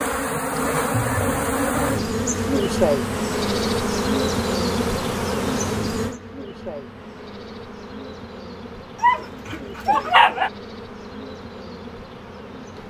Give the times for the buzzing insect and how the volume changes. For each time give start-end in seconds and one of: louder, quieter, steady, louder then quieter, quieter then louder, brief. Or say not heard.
0.0-12.8 quieter.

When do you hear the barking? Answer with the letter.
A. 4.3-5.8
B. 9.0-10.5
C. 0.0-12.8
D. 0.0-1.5
B.